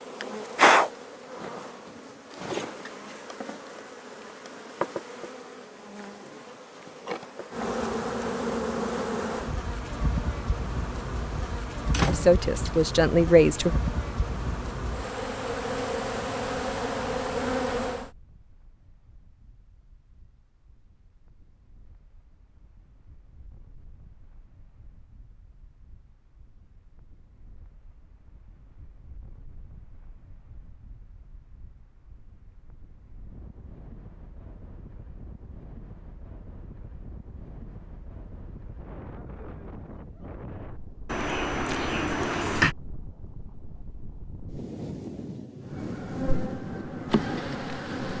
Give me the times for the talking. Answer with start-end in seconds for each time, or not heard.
12.1-13.8.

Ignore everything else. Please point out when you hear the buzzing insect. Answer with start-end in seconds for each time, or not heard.
0.0-18.1, 45.6-48.1.